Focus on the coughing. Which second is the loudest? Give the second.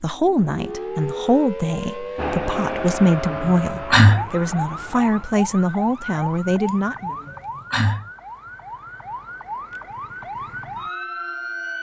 4 s.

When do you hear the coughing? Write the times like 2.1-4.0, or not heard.
2.9-4.3, 6.7-8.1.